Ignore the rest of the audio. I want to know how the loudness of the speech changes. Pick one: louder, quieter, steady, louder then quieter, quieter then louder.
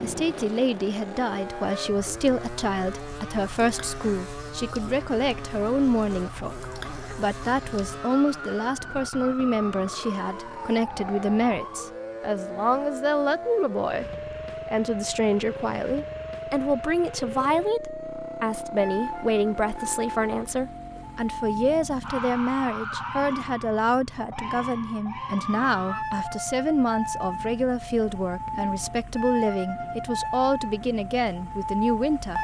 steady.